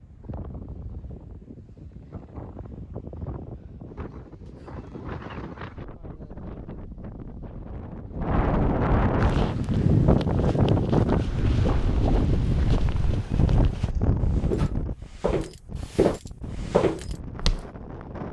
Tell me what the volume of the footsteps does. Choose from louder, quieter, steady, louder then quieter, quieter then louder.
louder.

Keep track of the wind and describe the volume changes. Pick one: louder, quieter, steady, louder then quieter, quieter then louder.
louder then quieter.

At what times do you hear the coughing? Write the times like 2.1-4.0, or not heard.
not heard.